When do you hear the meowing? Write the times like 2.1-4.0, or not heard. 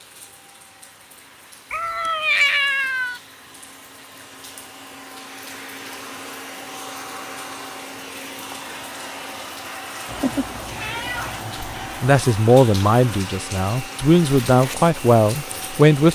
1.7-3.2, 10.1-12.3.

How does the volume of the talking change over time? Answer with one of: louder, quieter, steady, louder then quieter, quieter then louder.
quieter then louder.